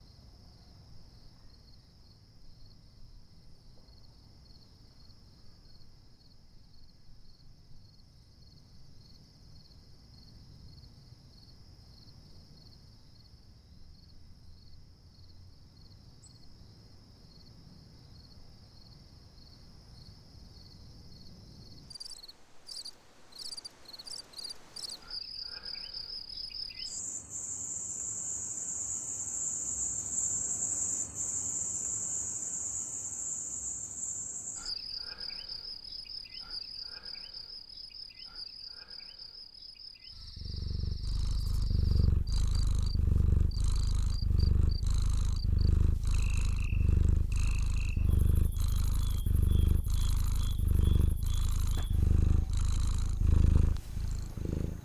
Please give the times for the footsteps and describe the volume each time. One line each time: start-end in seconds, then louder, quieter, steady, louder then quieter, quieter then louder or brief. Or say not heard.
not heard.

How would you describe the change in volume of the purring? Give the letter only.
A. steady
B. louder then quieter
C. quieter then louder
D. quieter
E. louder
A.